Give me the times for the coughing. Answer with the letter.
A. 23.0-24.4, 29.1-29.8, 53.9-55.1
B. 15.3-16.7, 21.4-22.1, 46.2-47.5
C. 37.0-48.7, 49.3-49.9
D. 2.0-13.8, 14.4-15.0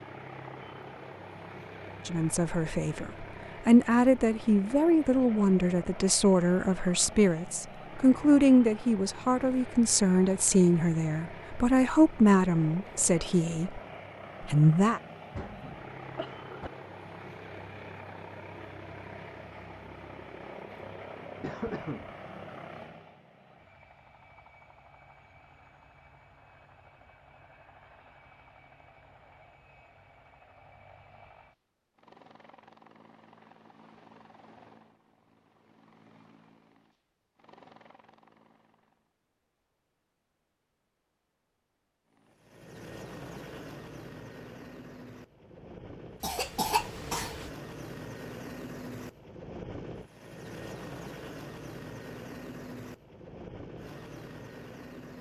B.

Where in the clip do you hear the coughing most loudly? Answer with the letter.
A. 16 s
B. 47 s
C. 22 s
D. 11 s
B.